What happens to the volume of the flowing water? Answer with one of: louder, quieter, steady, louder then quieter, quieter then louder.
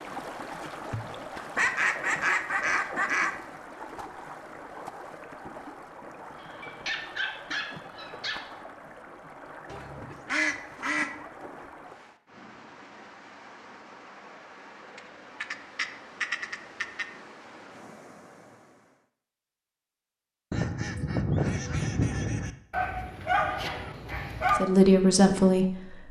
quieter.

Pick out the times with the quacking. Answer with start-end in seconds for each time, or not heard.
1.6-3.4, 9.7-11.2, 14.9-17.1, 20.5-22.5.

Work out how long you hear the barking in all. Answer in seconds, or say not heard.
4 s.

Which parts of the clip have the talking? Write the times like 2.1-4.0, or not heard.
24.6-26.0.